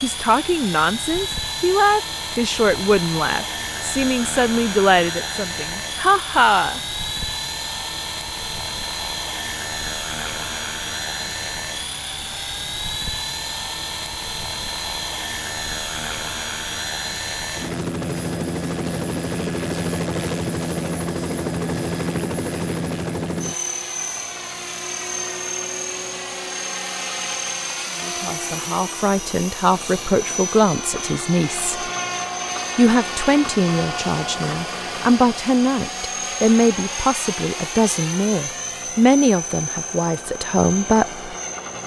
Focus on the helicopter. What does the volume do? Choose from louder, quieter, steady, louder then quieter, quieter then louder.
steady.